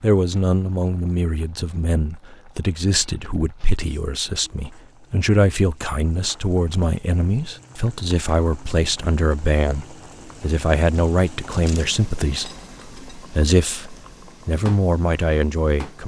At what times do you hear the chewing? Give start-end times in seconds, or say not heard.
not heard.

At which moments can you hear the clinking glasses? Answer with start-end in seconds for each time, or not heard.
12.3-13.2.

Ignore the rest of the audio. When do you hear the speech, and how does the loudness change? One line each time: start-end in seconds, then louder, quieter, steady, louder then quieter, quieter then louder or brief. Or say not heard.
0.0-16.0 steady.